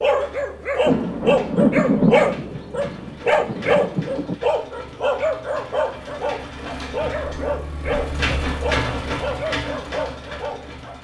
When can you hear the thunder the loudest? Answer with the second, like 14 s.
2 s.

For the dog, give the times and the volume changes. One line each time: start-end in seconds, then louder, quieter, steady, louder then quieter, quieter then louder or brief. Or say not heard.
0.0-10.9 quieter.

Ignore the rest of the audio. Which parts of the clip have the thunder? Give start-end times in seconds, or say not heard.
0.8-4.3.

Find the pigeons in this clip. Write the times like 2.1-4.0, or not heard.
not heard.